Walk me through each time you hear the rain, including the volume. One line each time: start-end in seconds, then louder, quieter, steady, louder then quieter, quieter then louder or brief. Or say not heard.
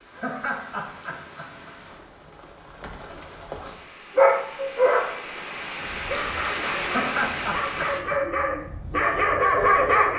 0.0-8.0 louder.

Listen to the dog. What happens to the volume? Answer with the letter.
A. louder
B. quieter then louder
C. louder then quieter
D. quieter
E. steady
B.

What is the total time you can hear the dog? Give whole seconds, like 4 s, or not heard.
6 s.